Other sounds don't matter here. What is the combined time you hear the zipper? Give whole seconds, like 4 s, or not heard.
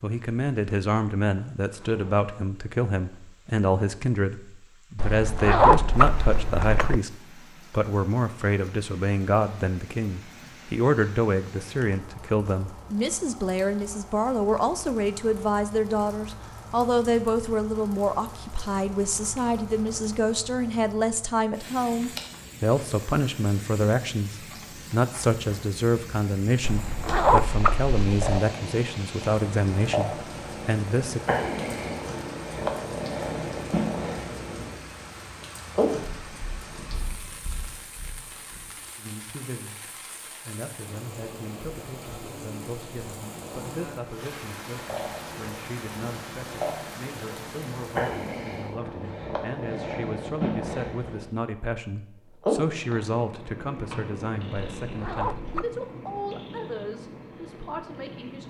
5 s.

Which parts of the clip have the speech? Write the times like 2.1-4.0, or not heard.
0.0-31.2, 39.0-58.4.